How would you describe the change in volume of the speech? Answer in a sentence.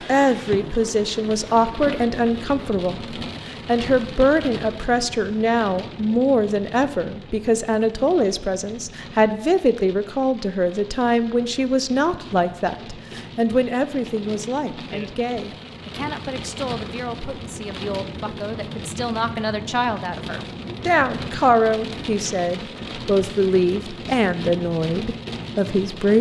The loudness of the speech goes down, then up.